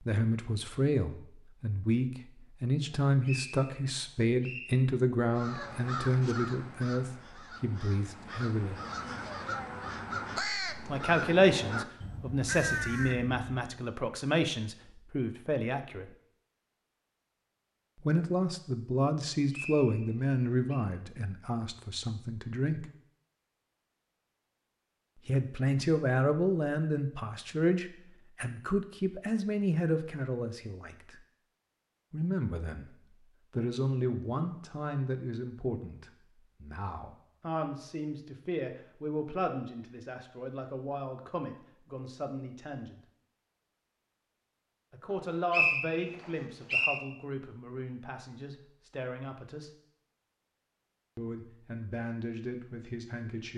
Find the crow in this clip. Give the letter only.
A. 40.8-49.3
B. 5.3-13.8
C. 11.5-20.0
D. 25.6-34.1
B.